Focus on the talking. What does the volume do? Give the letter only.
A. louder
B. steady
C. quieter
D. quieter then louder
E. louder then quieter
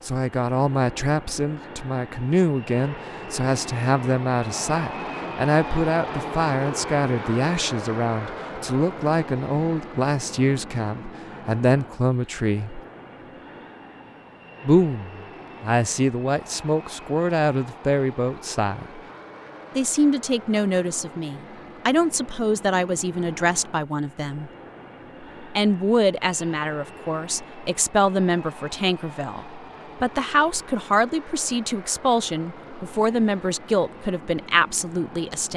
B.